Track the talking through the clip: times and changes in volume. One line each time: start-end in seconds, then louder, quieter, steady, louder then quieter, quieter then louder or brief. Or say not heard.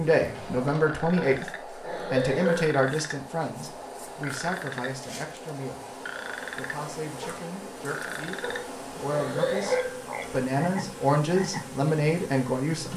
0.0-12.9 quieter then louder.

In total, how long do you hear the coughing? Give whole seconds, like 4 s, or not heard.
3 s.